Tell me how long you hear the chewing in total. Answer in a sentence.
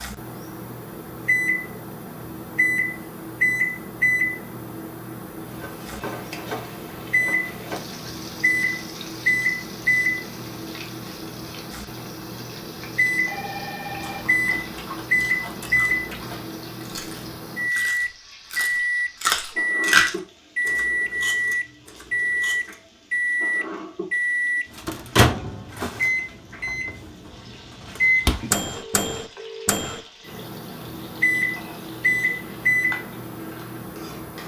You can hear the chewing for 9 seconds altogether.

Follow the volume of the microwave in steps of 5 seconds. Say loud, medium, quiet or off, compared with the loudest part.
loud, loud, medium, loud, loud, loud, loud.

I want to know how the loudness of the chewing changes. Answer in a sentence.
The volume of the chewing goes up, then down.